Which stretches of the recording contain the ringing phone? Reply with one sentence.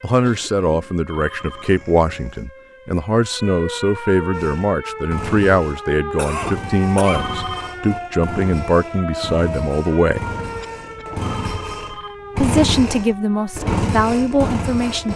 You can hear the ringing phone from 1.1 to 1.9 s, from 7.0 to 7.8 s and from 11.2 to 12.2 s.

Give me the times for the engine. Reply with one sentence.
You can hear the engine from 4.3 to 15.1 s.